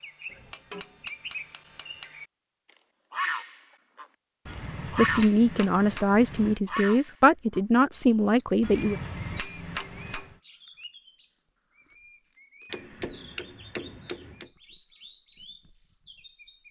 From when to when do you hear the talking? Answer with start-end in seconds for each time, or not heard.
5.0-8.9.